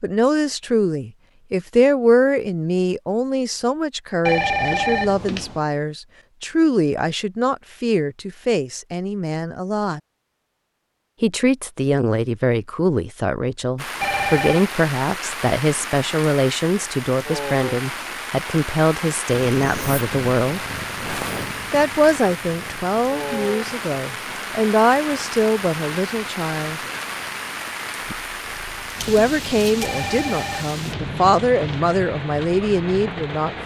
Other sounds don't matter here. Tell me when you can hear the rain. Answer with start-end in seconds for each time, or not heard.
13.8-33.6.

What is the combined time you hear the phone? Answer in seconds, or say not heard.
4 s.